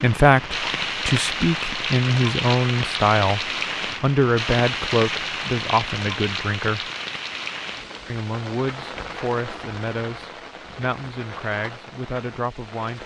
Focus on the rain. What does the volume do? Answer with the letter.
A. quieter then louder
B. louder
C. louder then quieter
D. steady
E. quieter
E.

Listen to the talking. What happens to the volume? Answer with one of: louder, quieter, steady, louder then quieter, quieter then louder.
quieter.